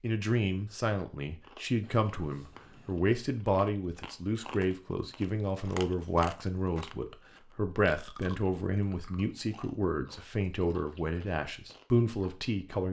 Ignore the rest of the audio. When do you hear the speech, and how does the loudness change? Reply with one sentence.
The speech can be heard from 0.0 to 12.8 s, at a steady volume.